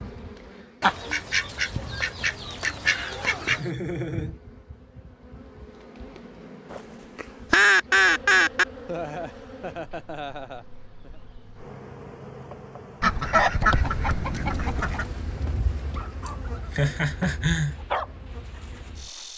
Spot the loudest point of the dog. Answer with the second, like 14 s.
18 s.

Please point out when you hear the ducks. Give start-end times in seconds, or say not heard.
0.8-3.6, 6.7-8.7, 13.0-15.1.